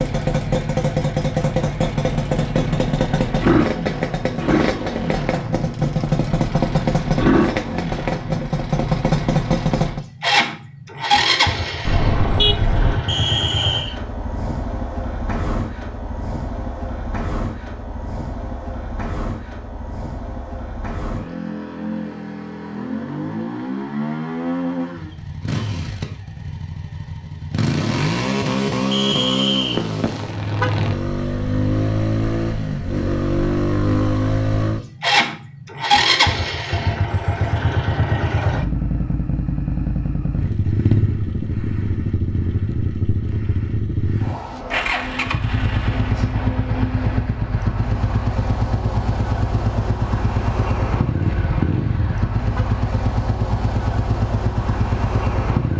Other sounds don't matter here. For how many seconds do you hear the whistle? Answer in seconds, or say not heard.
2 s.